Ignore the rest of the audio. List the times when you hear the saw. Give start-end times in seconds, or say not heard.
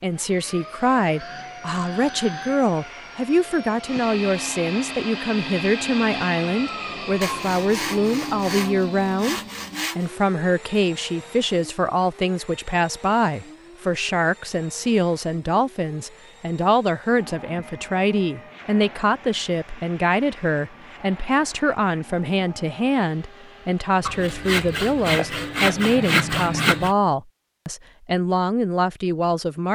7.2-10.1, 24.1-26.9.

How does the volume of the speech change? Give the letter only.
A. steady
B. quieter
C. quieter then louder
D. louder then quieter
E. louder
A.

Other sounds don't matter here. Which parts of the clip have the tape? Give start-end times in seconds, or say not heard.
not heard.